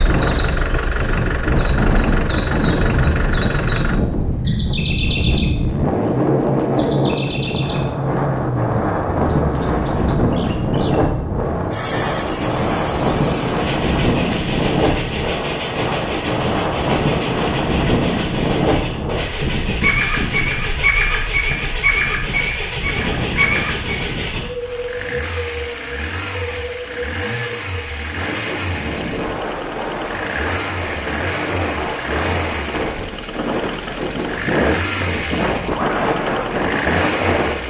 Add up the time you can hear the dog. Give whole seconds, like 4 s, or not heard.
not heard.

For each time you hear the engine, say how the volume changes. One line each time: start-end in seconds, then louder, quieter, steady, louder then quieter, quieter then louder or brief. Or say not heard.
0.0-37.6 steady.